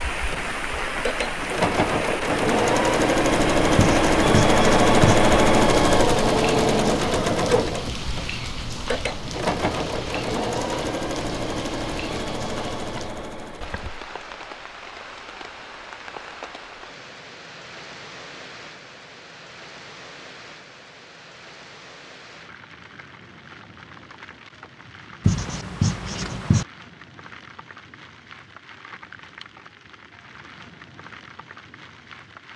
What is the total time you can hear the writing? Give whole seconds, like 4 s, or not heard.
3 s.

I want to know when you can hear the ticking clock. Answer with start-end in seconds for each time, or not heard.
not heard.